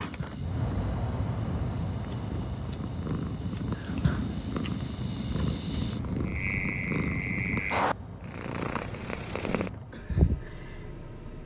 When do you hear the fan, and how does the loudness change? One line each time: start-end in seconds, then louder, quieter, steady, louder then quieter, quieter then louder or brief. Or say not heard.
0.0-11.4 quieter.